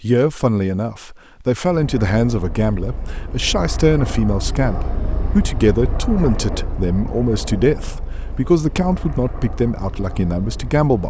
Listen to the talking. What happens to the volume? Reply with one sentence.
The loudness of the talking stays about the same.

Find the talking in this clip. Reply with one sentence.
The talking can be heard from 0.0 to 11.0 s.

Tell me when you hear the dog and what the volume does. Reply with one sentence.
You can't hear the dog here.